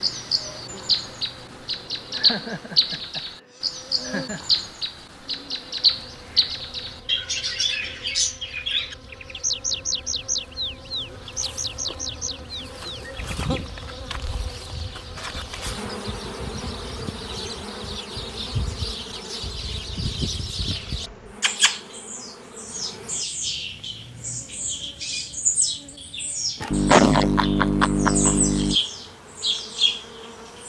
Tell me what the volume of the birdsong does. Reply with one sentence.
The volume of the birdsong goes down, then up.